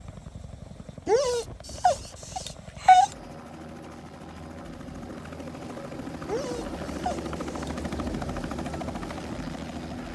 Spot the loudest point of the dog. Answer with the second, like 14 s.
3 s.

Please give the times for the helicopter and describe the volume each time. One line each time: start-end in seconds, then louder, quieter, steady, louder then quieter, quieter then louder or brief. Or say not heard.
0.0-10.0 louder.